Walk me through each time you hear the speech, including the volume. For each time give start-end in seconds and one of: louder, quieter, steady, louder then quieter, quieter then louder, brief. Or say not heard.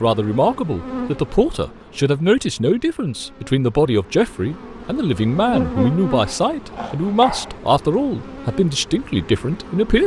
0.0-10.0 steady.